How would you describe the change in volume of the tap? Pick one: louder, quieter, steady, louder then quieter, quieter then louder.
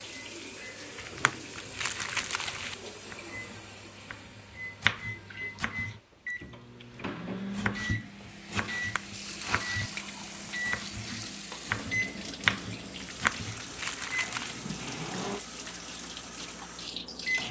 quieter then louder.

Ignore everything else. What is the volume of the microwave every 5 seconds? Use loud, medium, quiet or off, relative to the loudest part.
medium, loud, loud, loud.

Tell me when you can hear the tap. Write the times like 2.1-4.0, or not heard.
0.0-17.4.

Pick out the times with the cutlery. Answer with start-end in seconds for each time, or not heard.
not heard.